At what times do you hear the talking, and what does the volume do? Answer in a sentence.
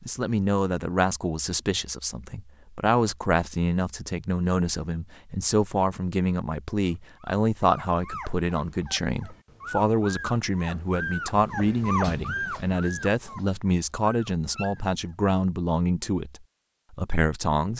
You can hear the talking from 0.0 to 17.7 s, at a steady volume.